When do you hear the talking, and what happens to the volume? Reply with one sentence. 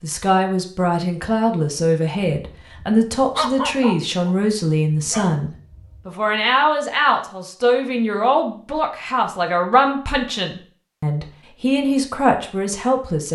The talking can be heard from 0.0 to 13.3 s, at a steady volume.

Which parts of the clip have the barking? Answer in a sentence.
You can hear the barking from 2.5 to 6.0 s.